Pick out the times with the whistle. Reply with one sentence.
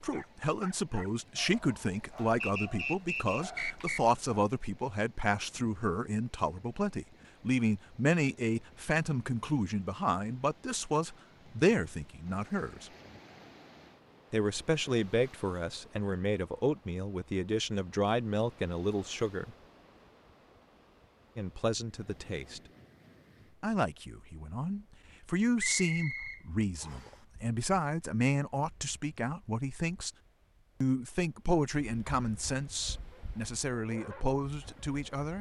The whistle can be heard from 2.4 to 4.0 s and from 25.6 to 27.2 s.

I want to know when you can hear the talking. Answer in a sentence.
You can hear the talking from 0.0 to 12.9 s, from 14.3 to 19.6 s, from 21.4 to 22.6 s, from 23.6 to 30.1 s and from 30.8 to 35.3 s.